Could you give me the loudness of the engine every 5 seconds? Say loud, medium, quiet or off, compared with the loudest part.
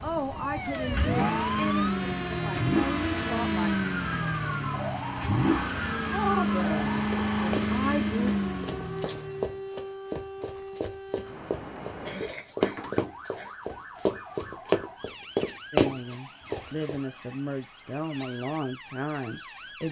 loud, loud, off, off.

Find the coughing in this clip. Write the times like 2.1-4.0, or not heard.
12.1-13.6.